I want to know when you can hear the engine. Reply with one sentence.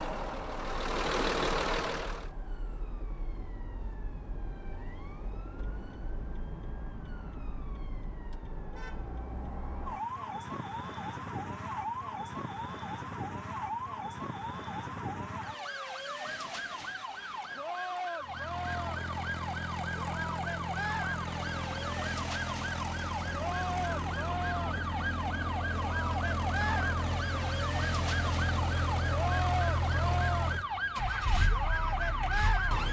You can hear the engine from 0.0 to 2.3 s and from 18.2 to 32.8 s.